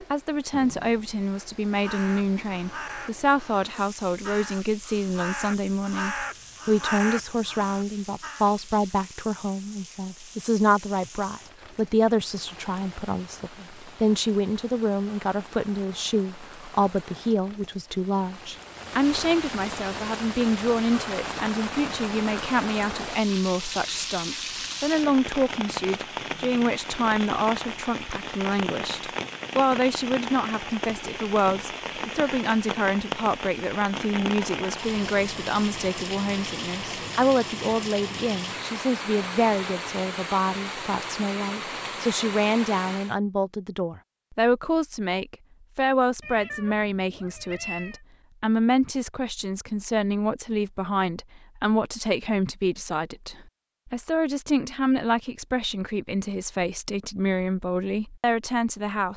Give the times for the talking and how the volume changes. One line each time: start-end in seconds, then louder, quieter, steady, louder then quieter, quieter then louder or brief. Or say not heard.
0.0-59.1 steady.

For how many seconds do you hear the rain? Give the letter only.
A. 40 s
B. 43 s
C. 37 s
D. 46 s
B.